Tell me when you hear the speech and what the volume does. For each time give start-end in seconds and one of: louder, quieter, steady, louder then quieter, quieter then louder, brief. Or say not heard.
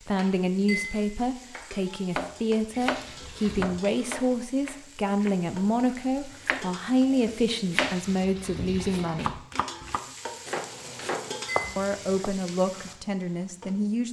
0.1-9.4 steady
11.8-14.0 brief.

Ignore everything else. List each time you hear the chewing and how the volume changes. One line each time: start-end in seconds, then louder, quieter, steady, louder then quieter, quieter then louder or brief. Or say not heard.
not heard.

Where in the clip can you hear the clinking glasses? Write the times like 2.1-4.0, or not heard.
0.1-1.7, 10.9-11.8.